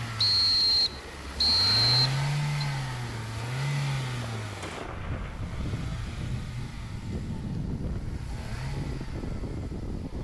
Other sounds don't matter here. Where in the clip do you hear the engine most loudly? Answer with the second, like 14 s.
2 s.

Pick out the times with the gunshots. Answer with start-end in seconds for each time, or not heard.
4.6-5.8.